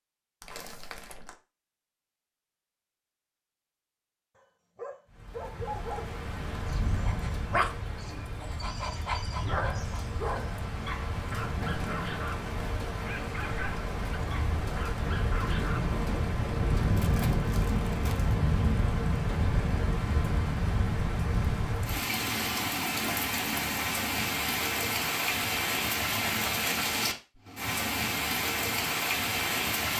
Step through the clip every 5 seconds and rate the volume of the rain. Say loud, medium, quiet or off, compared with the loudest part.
off, medium, medium, loud, loud, loud.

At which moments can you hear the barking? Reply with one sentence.
You can hear the barking from 4.3 to 15.8 s.